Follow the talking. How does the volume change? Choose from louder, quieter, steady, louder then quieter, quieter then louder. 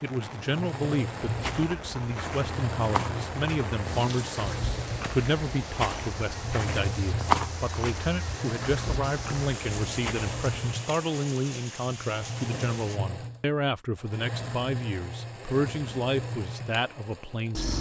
steady.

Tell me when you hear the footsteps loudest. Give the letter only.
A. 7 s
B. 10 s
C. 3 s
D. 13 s
A.